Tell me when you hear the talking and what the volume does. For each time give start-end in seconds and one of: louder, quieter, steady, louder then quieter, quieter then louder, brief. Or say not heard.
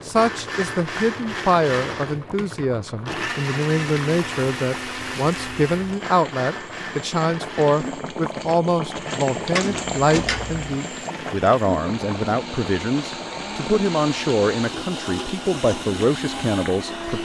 0.1-17.2 steady.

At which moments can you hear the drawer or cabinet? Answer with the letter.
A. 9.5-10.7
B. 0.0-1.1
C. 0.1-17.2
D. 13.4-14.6
A.